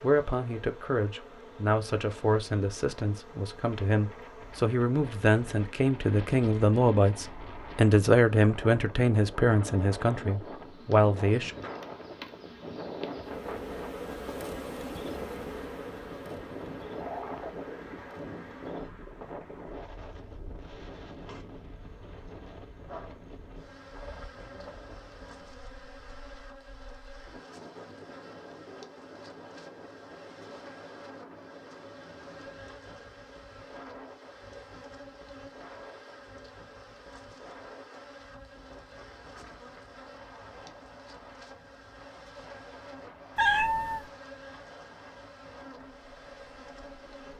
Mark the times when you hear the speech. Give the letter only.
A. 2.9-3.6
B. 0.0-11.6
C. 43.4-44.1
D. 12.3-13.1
B.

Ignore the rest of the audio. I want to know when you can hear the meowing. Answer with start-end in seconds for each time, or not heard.
43.4-44.1.